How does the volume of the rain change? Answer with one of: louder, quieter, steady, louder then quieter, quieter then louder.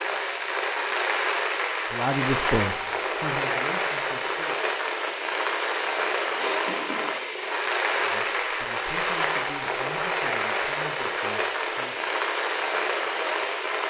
steady.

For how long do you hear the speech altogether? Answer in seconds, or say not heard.
7 s.